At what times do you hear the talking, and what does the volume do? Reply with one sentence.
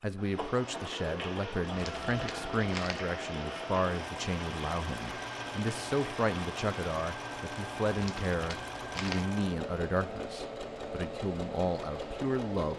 You can hear the talking from 0.0 to 12.7 s, at a steady volume.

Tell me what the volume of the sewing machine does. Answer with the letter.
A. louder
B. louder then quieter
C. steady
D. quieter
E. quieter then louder
C.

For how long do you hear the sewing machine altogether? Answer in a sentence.
The sewing machine can be heard for 13 seconds in total.